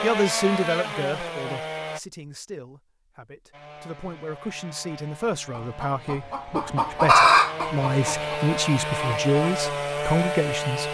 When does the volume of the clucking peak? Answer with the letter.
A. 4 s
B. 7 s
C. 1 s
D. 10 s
B.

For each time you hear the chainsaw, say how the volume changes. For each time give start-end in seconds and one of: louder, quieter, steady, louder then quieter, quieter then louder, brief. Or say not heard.
0.0-2.0 brief
3.5-10.8 louder.